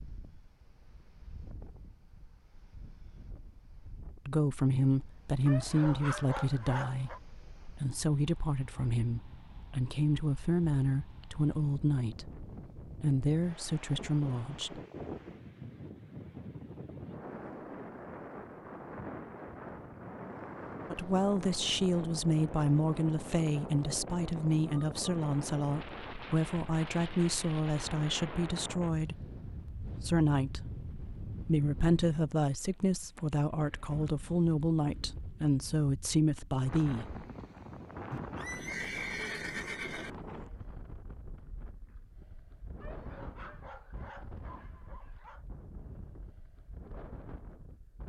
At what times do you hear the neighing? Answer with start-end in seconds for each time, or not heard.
38.1-40.1.